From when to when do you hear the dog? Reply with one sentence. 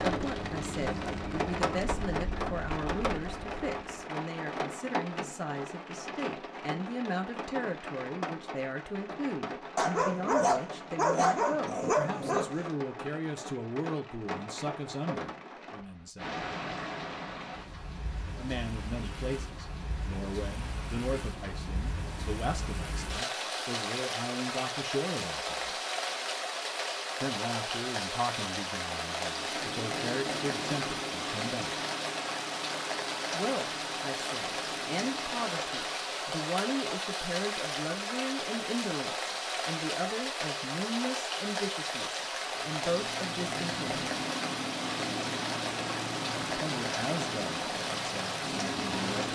You can hear the dog from 9.8 to 12.6 s.